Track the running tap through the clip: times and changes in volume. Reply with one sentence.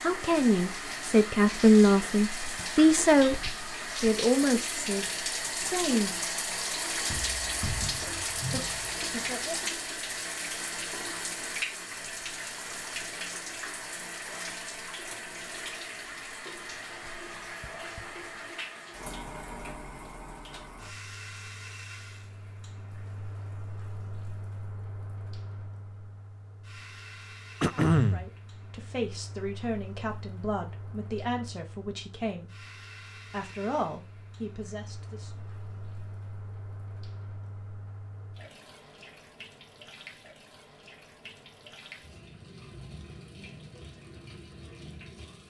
You can hear the running tap from 0.0 to 45.4 s, getting quieter.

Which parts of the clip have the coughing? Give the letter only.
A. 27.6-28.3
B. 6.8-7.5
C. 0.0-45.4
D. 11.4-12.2
A.